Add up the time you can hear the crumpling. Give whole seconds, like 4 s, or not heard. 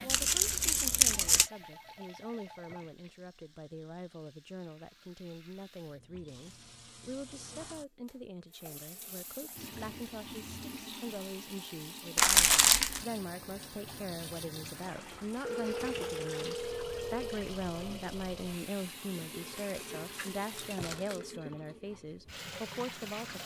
4 s.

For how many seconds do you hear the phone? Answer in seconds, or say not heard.
4 s.